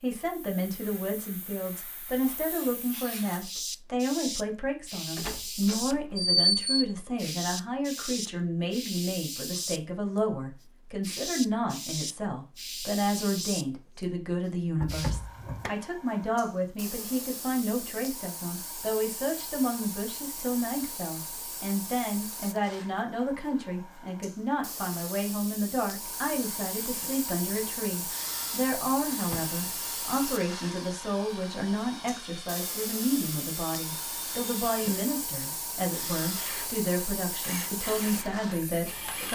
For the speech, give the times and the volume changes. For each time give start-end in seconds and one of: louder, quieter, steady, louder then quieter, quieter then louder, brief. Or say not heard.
0.0-39.2 steady.